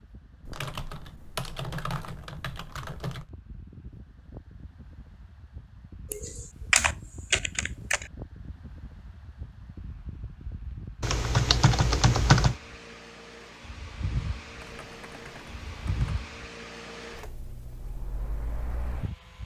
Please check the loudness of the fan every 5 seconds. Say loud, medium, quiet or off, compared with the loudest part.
medium, medium, loud, loud.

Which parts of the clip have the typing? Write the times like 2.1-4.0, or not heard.
0.5-3.2, 6.1-8.1, 11.0-12.6, 14.6-16.3.